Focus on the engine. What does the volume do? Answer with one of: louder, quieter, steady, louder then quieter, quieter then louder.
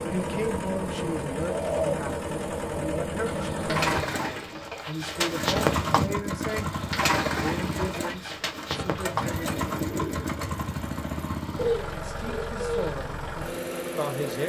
steady.